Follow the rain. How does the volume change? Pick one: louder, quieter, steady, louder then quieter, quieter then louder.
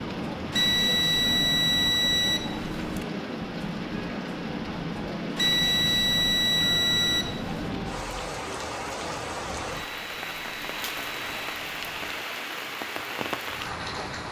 steady.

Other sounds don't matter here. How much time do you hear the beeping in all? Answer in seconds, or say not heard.
7 s.